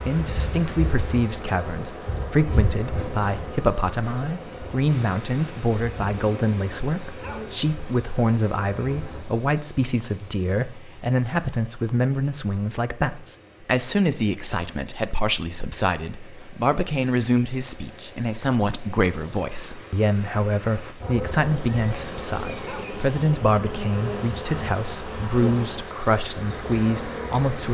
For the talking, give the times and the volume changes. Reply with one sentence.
You can hear the talking from 0.0 to 27.6 s, at a steady volume.